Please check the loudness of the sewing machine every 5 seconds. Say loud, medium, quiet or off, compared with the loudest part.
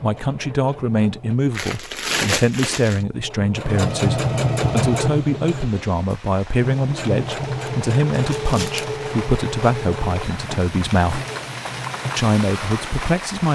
loud, loud, medium.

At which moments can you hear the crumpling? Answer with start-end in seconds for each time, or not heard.
1.5-3.0, 7.8-8.9.